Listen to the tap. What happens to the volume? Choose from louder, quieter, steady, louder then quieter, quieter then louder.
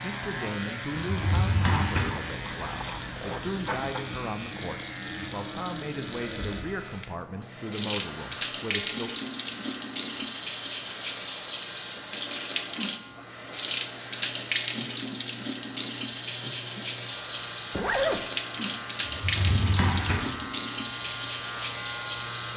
louder.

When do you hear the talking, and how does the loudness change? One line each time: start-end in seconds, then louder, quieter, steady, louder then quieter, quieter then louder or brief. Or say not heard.
0.0-9.1 steady.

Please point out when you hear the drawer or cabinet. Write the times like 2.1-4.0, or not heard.
1.0-2.2, 19.1-20.3.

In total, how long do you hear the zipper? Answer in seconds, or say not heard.
2 s.